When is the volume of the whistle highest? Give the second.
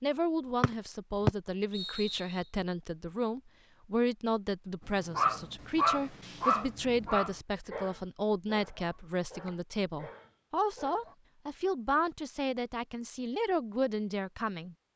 1 s.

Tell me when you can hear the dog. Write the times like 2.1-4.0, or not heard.
4.8-11.2.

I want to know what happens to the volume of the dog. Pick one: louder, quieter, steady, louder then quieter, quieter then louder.
quieter.